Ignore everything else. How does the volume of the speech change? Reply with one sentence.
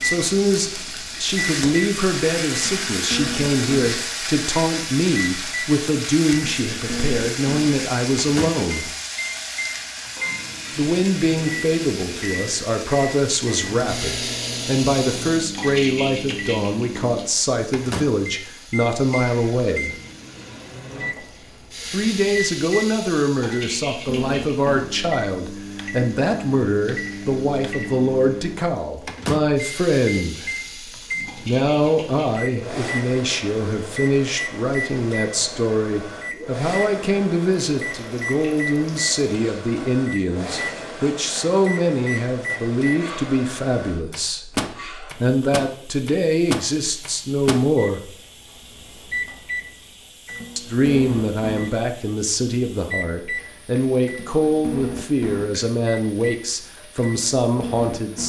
The loudness of the speech stays about the same.